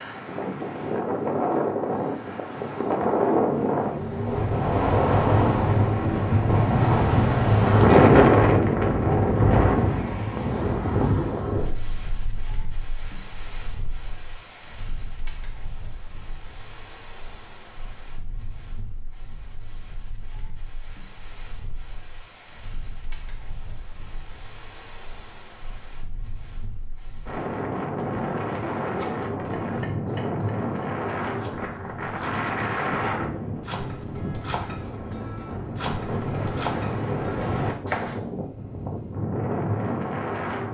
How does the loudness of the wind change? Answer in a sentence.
The volume of the wind goes down, then up.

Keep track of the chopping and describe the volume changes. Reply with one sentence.
The loudness of the chopping goes up.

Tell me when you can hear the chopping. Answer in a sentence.
The chopping can be heard from 28.8 to 38.2 s.